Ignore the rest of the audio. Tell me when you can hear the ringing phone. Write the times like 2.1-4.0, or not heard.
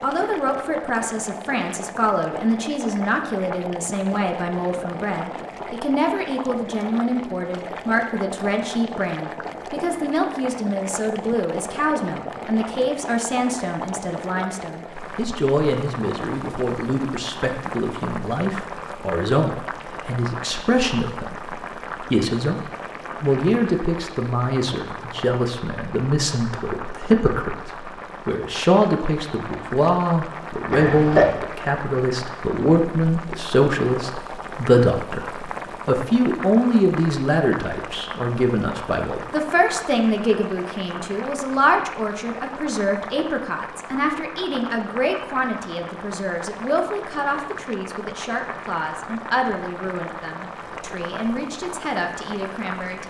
not heard.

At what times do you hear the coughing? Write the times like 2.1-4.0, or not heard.
30.7-31.4.